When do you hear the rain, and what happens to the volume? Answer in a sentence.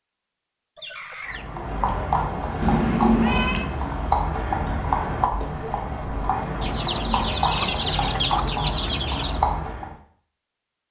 The rain can't be heard in this clip.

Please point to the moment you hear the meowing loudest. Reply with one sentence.
The volume of the meowing peaks at 3 seconds.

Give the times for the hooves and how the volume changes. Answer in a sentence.
You can hear the hooves from 1.3 to 9.9 s, at a steady volume.